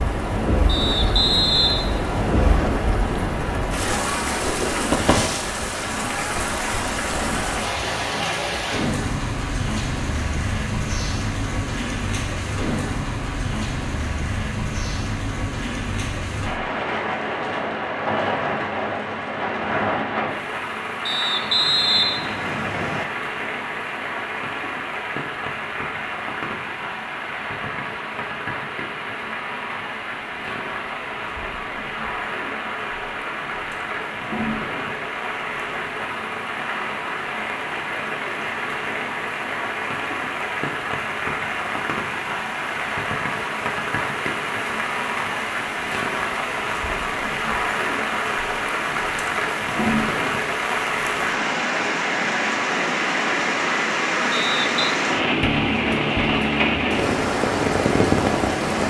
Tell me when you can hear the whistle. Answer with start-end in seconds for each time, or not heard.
0.7-2.7, 21.1-23.1, 54.3-55.0.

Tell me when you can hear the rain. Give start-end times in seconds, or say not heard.
0.0-58.8.